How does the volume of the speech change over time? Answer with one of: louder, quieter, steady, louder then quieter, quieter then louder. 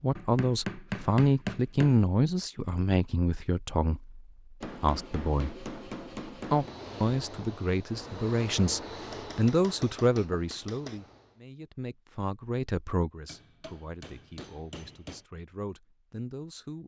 quieter.